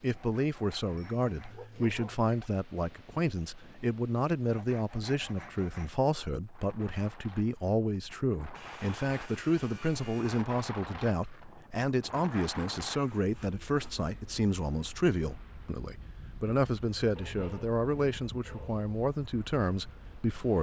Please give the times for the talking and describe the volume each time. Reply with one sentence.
You can hear the talking from 0.0 to 20.5 s, at a steady volume.